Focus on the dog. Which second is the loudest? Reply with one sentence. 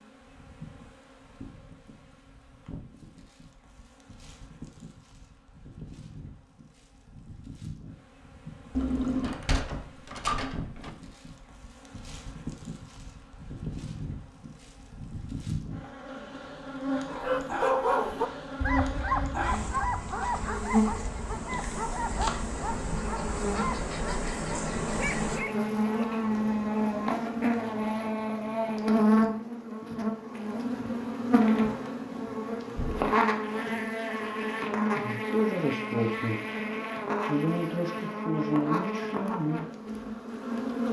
The loudest moment of the dog is at 18 seconds.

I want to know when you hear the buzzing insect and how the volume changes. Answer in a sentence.
The buzzing insect can be heard from 0.0 to 40.8 s, getting louder.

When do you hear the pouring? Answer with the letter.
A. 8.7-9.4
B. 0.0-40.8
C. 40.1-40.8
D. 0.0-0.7
A.